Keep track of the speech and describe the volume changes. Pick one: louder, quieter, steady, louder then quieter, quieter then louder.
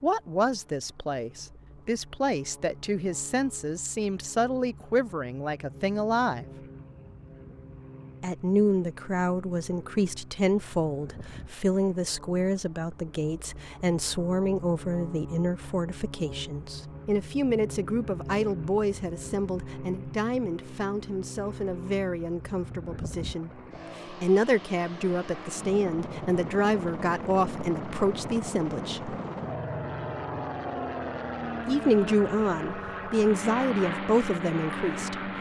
steady.